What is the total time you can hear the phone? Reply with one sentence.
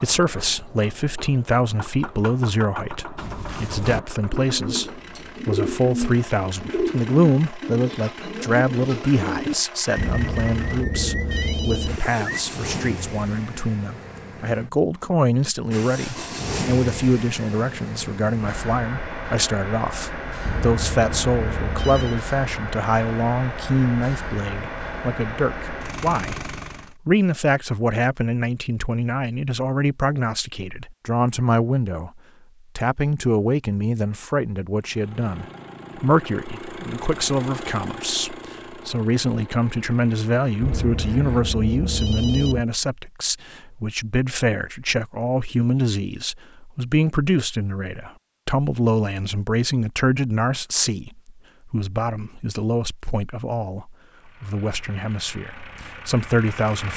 You can hear the phone for 6 seconds altogether.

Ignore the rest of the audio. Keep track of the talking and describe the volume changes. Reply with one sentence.
The volume of the talking stays about the same.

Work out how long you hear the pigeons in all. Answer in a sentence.
The pigeons can be heard for 9 seconds in total.